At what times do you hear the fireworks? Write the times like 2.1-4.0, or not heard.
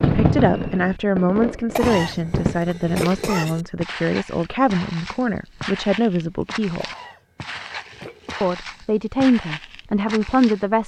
0.0-2.5.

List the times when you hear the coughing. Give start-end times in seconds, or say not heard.
1.7-3.6, 6.8-8.6.